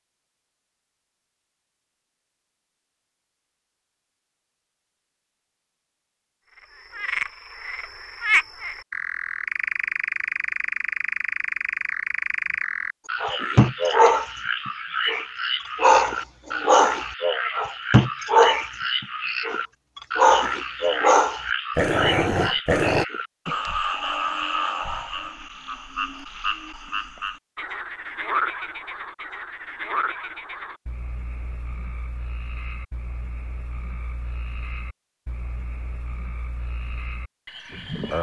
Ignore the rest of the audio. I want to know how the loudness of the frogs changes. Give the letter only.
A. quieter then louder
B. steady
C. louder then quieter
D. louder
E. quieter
E.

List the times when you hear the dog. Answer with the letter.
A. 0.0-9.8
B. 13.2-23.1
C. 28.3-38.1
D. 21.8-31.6
B.